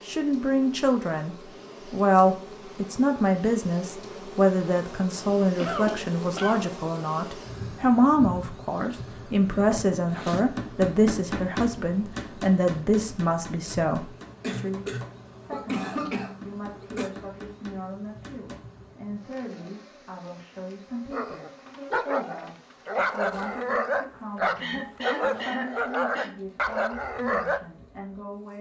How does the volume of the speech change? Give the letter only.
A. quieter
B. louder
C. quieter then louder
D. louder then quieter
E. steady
A.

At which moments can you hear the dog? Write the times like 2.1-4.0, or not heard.
21.1-27.6.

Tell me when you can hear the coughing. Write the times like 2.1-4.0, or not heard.
5.5-6.7, 14.4-17.1, 24.6-26.4.